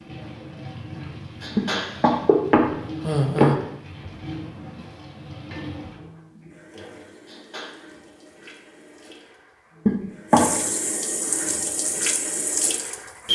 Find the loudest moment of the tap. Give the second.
13 s.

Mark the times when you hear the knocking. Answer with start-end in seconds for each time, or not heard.
1.6-3.5, 9.8-10.4.